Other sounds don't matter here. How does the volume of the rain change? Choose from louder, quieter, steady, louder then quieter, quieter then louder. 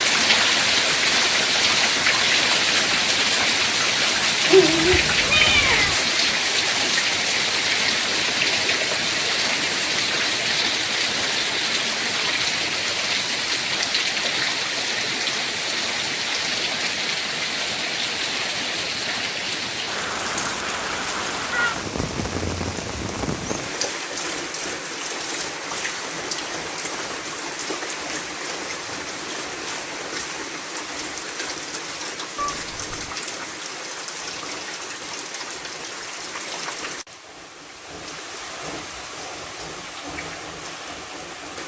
quieter.